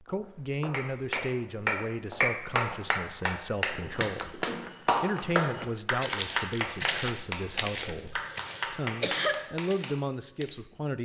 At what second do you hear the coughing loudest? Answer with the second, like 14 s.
9 s.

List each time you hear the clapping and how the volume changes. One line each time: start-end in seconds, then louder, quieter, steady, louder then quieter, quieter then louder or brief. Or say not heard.
0.7-9.9 quieter.